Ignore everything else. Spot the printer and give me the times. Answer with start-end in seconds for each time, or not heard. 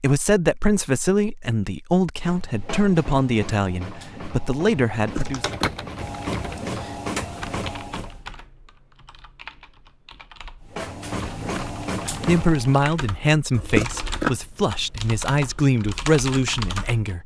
2.2-8.2, 10.6-12.8.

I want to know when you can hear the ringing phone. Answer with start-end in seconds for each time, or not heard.
not heard.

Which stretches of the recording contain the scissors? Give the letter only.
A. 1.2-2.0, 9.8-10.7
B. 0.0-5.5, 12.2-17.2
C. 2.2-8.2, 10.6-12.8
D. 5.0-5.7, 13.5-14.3
D.